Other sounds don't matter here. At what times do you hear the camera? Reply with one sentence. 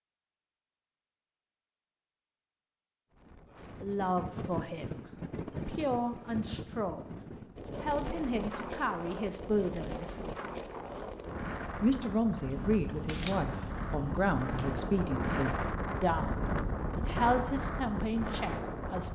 The camera can be heard from 12.4 to 15.0 s.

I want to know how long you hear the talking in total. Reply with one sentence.
The talking can be heard for 13 seconds in total.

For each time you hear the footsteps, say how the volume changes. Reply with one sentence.
The footsteps can't be heard in this clip.